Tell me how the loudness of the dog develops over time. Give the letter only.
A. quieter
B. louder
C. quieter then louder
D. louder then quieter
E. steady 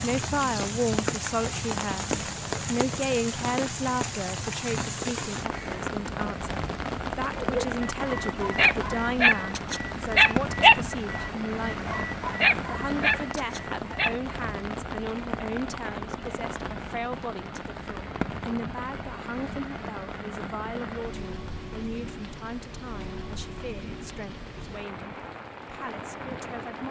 D.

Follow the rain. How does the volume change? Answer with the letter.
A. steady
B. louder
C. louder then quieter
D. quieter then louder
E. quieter
E.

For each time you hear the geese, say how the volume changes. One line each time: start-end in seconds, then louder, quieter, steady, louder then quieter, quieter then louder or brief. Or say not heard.
not heard.